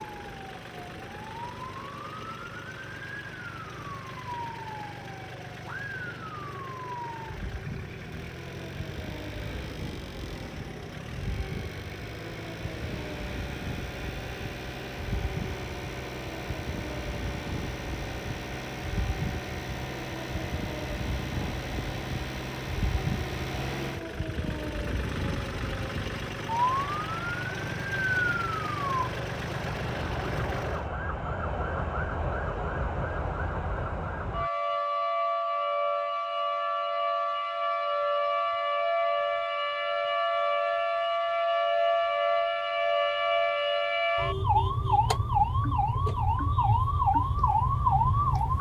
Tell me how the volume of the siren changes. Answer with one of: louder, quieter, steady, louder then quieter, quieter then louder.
louder.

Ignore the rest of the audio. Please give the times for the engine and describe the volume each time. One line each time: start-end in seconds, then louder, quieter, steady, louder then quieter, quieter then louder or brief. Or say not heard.
0.0-30.9 louder.